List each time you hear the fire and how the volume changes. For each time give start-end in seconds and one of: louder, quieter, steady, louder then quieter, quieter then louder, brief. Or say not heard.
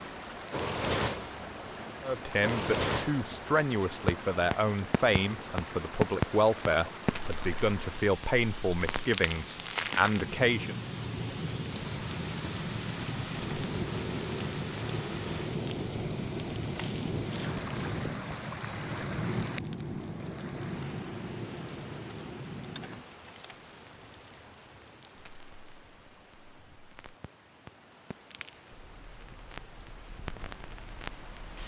0.2-31.6 quieter.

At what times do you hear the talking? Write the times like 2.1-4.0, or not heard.
2.0-10.8.